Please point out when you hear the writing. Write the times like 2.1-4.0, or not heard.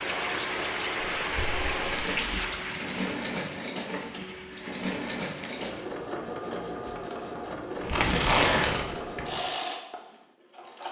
not heard.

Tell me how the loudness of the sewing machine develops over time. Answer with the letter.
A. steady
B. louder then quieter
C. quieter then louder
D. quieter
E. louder
A.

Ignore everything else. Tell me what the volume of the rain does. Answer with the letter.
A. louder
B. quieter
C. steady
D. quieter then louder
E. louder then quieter
B.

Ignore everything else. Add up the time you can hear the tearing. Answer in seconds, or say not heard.
3 s.